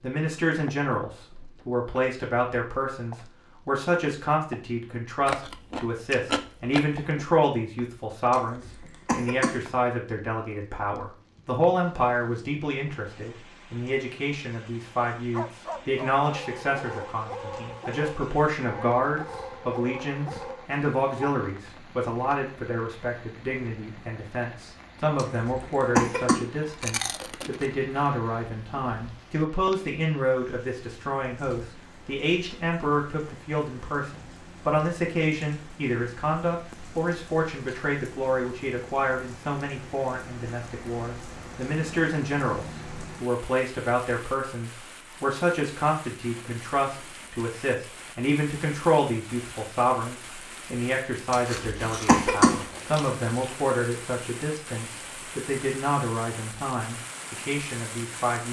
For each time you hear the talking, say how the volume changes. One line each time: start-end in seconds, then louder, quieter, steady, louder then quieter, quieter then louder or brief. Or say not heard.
0.0-58.4 steady.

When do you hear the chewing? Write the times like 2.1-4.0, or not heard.
5.2-7.2, 26.6-27.8, 51.5-53.5.